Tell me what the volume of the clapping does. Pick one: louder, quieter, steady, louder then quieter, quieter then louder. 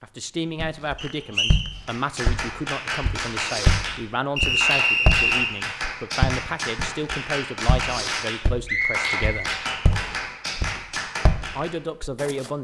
steady.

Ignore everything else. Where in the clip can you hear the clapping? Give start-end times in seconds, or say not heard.
1.8-11.8.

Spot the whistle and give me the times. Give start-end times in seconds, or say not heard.
0.9-1.6, 4.3-5.5, 8.7-10.2.